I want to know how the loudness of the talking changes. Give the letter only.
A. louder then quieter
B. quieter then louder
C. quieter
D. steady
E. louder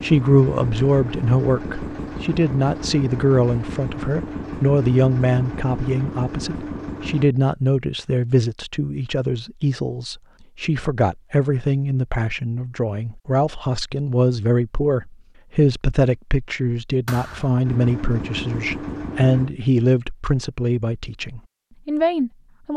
D.